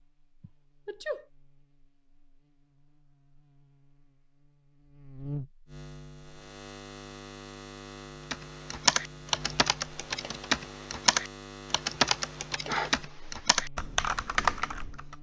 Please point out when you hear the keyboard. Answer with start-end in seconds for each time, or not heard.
8.3-15.1.